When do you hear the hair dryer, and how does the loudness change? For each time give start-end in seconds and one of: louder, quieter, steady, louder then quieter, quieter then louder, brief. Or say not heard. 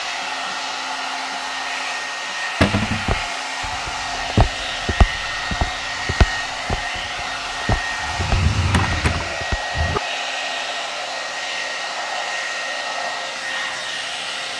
0.0-14.5 steady.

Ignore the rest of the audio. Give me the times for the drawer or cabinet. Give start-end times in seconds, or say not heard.
2.6-3.0, 8.0-10.0.